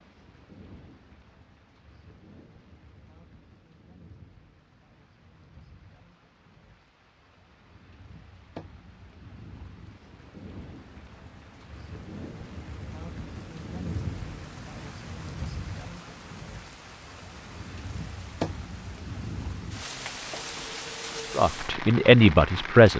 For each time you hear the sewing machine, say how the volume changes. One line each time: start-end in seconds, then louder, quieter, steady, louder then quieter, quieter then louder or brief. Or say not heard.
not heard.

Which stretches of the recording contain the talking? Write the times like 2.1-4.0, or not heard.
21.4-22.9.